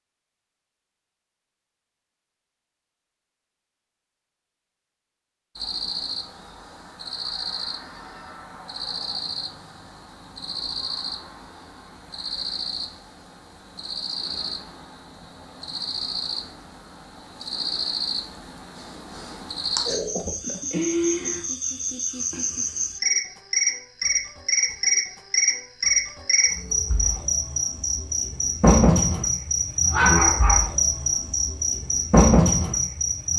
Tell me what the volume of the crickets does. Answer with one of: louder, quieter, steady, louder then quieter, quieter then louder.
louder.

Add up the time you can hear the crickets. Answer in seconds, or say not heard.
28 s.